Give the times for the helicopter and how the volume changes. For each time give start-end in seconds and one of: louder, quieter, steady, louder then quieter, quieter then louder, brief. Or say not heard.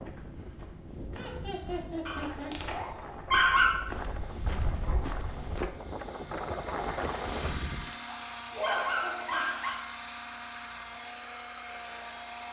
3.8-12.4 louder.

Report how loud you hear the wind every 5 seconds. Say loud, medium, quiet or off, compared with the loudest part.
medium, loud, off.